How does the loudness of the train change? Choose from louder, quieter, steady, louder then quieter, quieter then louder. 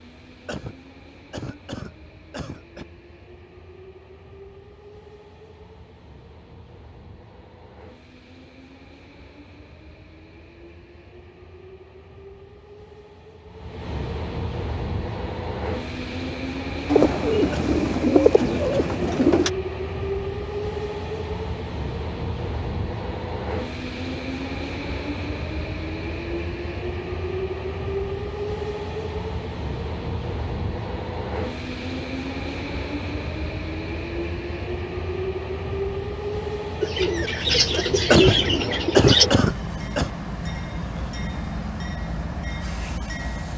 louder.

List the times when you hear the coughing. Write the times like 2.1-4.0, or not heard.
0.5-2.9, 17.5-18.9, 38.1-40.1.